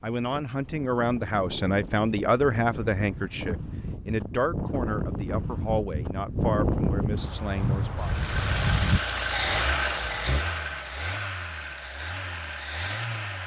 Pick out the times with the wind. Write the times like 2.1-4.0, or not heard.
0.1-9.0.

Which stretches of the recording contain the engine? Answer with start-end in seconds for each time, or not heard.
8.0-13.4.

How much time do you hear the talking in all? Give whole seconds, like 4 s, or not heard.
8 s.